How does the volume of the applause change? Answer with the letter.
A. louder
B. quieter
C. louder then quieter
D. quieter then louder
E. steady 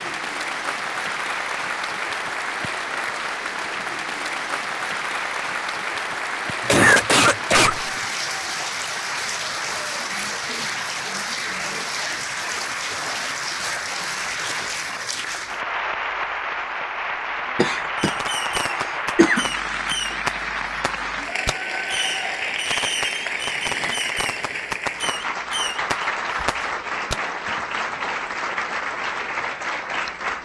E.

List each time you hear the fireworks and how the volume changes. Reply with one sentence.
The fireworks can be heard from 17.9 to 27.2 s, at a steady volume.